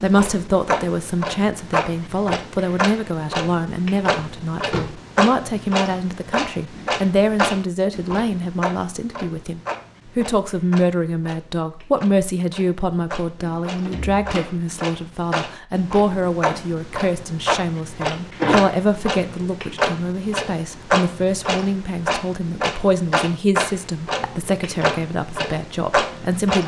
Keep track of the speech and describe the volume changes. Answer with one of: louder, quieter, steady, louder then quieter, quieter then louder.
steady.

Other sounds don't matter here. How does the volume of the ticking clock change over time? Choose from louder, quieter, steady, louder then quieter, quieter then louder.
quieter then louder.